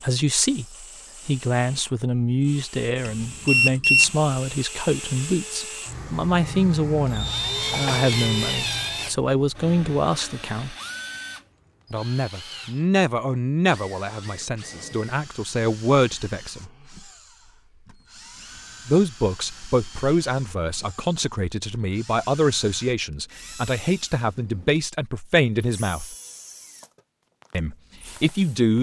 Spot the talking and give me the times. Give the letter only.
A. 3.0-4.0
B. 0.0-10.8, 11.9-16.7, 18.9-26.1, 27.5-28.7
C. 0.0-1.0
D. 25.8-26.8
B.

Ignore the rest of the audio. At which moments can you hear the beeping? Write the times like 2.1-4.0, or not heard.
3.0-4.0.